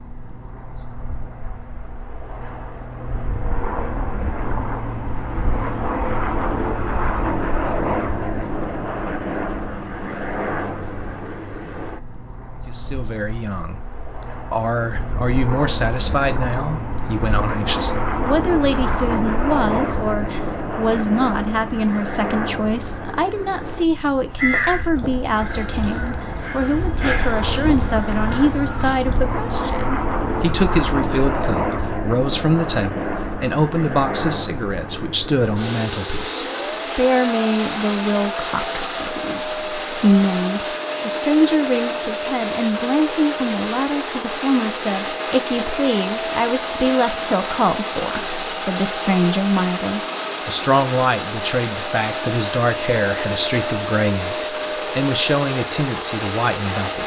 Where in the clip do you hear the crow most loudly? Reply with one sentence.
The volume of the crow peaks at 25 seconds.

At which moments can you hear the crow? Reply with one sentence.
The crow can be heard from 24.3 to 29.2 s.